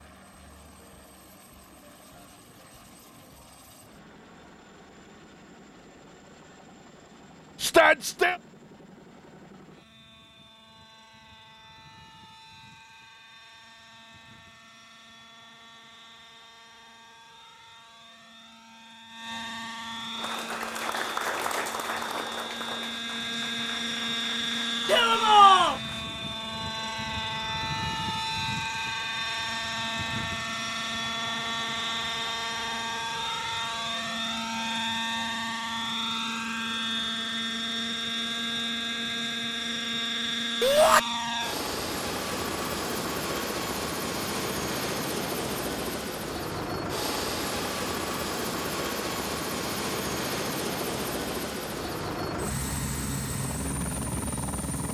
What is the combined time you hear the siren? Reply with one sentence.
The siren can't be heard in this clip.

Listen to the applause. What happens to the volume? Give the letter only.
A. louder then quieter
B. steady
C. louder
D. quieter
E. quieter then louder
D.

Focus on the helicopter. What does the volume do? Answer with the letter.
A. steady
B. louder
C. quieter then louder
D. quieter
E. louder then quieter
B.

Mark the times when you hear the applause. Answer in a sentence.
You can hear the applause from 20.1 to 26.1 s.